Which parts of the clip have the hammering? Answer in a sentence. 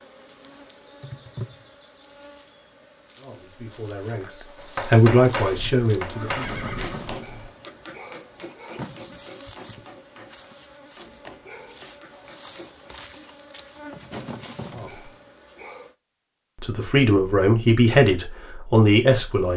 The hammering can be heard from 4.2 to 12.9 s.